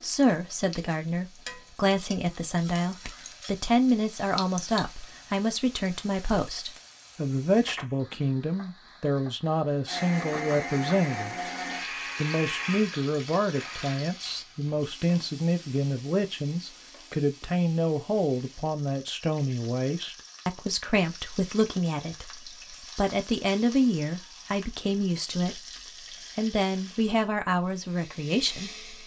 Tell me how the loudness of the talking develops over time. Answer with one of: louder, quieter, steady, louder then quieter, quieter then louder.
steady.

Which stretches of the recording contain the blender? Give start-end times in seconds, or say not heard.
9.8-14.1, 27.4-29.0.